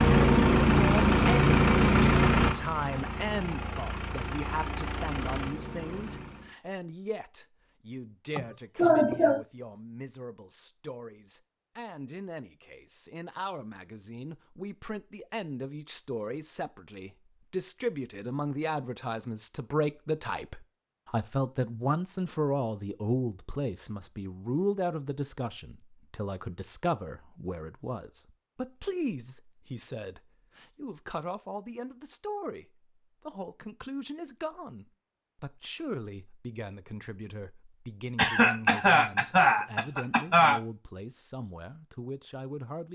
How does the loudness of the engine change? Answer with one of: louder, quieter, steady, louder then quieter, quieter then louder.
quieter.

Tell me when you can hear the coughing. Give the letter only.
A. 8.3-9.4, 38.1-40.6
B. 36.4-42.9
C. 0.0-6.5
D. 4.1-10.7
A.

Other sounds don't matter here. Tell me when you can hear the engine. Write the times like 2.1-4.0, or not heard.
0.0-6.5.